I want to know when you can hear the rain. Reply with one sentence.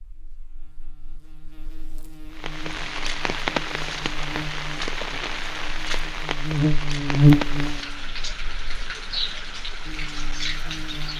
You can hear the rain from 2.4 to 11.1 s.